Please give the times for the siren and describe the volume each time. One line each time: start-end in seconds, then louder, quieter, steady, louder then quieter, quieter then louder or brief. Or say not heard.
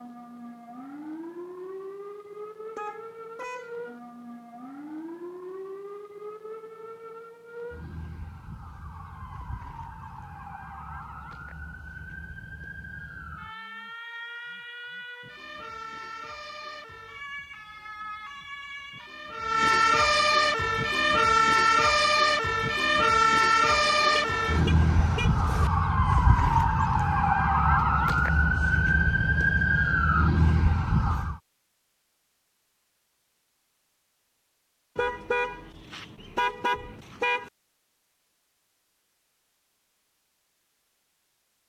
0.0-31.4 louder.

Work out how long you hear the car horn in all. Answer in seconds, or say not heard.
6 s.